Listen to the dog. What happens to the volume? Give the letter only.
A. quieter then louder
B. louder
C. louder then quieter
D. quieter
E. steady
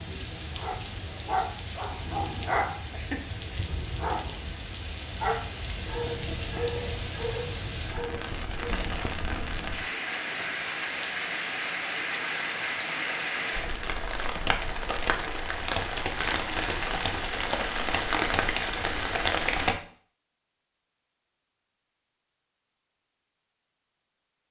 D.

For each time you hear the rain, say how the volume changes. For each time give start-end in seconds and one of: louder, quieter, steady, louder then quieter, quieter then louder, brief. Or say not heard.
0.0-19.8 louder.